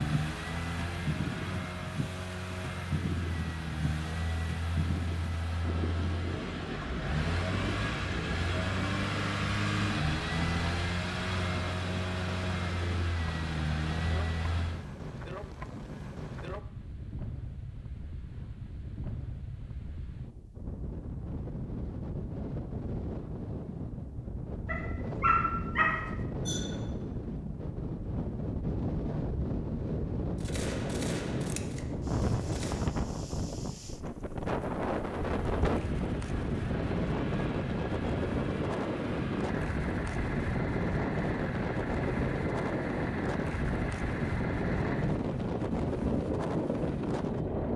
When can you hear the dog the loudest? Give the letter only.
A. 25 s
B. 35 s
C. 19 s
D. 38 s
A.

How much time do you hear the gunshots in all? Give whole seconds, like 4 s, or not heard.
3 s.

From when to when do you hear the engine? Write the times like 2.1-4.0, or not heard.
0.0-14.9, 35.2-47.7.